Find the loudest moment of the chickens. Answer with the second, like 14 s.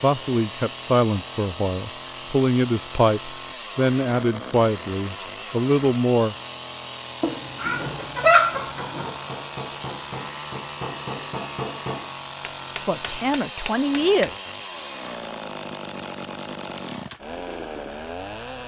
8 s.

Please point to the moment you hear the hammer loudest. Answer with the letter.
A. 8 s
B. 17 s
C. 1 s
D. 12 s
D.